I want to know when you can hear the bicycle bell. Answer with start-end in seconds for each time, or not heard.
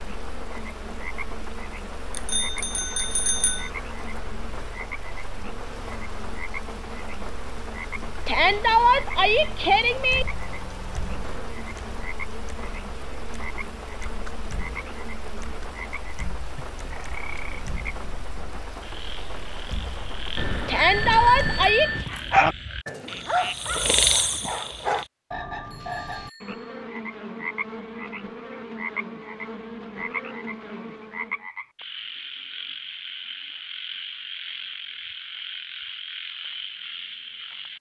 2.1-3.7, 20.4-22.1, 25.7-26.8.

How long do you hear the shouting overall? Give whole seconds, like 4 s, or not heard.
3 s.